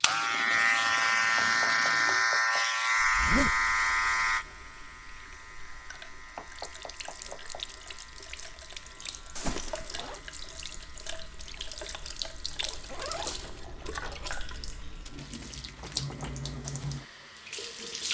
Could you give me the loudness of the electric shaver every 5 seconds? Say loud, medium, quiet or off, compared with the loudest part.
loud, quiet, quiet, quiet.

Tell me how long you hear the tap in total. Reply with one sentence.
You can hear the tap for 18 seconds altogether.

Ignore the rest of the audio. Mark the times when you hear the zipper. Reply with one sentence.
You can hear the zipper from 3.0 to 3.6 s, from 9.3 to 10.2 s and from 12.8 to 14.3 s.